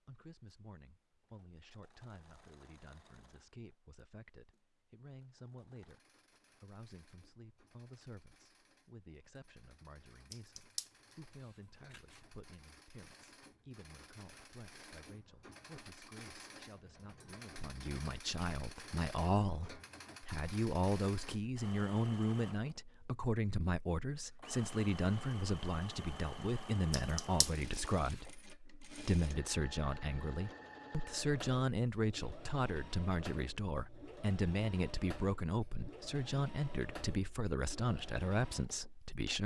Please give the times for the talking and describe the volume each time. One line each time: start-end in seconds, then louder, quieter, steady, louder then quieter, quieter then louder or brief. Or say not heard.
0.1-39.4 louder.